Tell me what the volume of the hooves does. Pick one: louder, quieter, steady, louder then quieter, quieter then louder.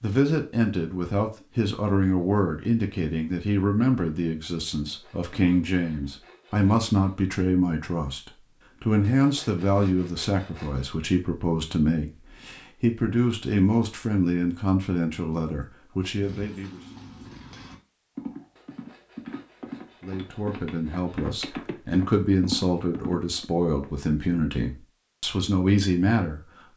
louder.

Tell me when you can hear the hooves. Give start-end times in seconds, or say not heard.
16.0-23.4.